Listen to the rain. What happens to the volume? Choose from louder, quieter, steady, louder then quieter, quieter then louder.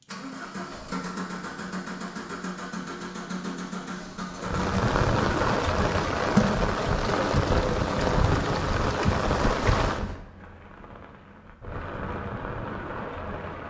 quieter.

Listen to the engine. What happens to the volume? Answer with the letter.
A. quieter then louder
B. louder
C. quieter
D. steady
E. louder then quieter
D.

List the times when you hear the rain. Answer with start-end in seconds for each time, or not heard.
4.3-13.6.